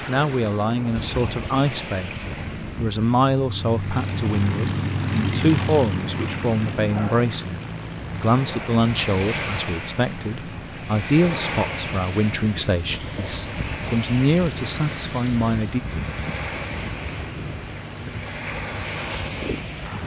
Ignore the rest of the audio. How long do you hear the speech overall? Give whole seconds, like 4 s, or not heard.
15 s.